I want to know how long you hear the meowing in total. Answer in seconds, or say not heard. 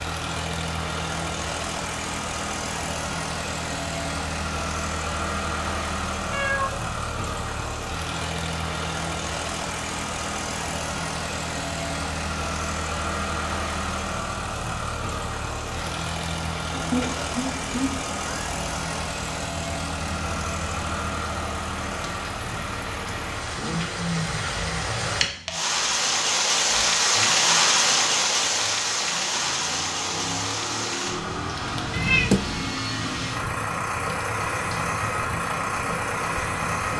3 s.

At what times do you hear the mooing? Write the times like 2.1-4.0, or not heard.
not heard.